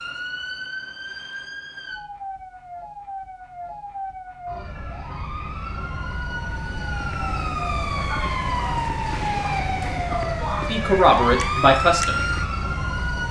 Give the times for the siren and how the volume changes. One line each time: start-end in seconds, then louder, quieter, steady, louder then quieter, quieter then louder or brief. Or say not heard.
0.0-13.2 louder.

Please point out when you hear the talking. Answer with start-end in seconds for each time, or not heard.
10.7-12.2.